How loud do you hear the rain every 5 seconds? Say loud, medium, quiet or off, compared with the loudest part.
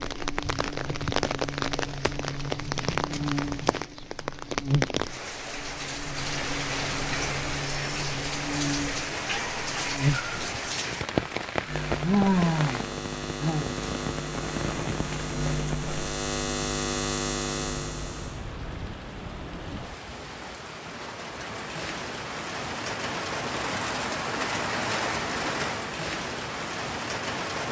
loud, loud, loud, medium, loud, loud.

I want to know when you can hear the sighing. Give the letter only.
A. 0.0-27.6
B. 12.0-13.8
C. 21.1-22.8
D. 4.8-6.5
B.